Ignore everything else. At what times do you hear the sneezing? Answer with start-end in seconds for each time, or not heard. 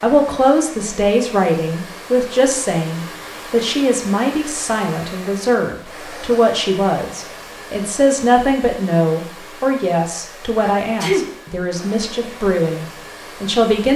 10.6-11.2.